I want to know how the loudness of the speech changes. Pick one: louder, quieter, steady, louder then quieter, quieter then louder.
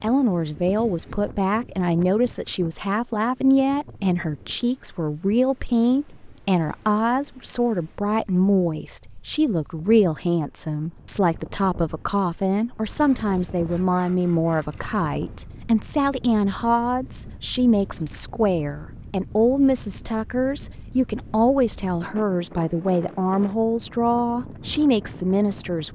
steady.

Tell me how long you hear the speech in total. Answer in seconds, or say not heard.
26 s.